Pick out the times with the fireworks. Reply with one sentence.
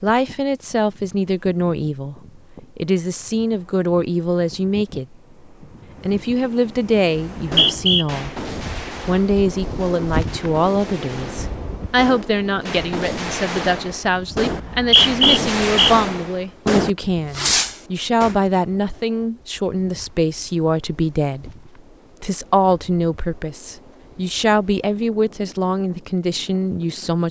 You can hear the fireworks from 7.3 to 18.4 s.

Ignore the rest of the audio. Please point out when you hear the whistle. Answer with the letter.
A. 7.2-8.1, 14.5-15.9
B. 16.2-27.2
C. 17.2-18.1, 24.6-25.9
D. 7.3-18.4
A.